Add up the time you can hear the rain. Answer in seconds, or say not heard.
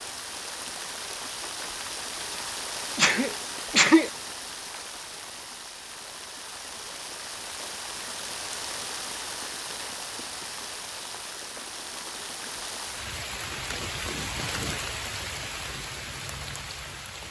17 s.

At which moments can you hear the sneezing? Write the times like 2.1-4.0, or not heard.
3.0-4.1.